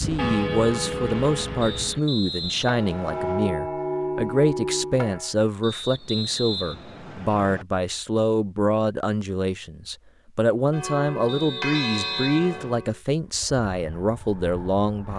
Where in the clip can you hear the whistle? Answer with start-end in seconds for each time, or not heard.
1.6-3.5, 5.6-7.7, 11.2-12.8.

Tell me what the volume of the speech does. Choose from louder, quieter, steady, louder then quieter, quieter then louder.
steady.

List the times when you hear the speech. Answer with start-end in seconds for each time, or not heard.
0.0-15.1.